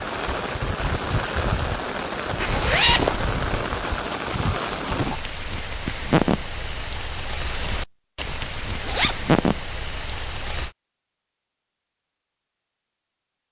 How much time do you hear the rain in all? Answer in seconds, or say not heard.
11 s.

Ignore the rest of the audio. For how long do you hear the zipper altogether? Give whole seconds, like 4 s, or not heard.
2 s.